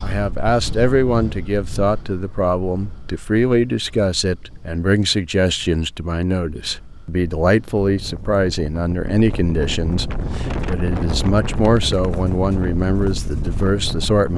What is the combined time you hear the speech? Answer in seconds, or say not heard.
14 s.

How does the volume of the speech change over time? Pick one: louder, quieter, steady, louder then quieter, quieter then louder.
steady.